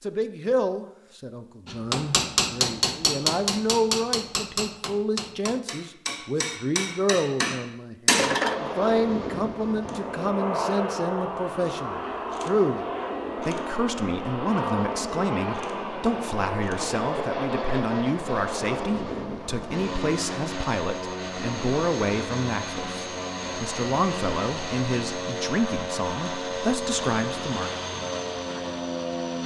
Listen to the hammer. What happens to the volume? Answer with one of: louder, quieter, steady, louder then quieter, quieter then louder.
quieter then louder.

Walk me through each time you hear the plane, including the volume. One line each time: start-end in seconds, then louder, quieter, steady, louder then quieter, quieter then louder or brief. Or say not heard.
8.3-29.4 steady.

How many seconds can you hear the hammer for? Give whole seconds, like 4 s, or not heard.
7 s.